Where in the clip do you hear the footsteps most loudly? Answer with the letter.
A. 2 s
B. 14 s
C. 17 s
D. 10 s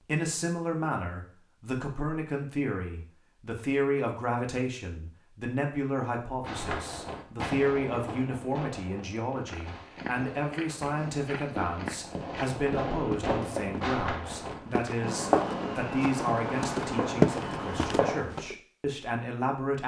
C.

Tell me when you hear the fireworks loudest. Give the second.
15 s.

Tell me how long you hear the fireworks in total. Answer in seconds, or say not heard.
12 s.